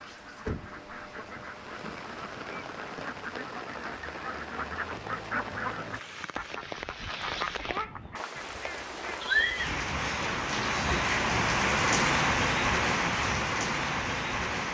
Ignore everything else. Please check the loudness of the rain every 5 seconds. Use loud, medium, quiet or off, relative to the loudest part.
quiet, medium, loud.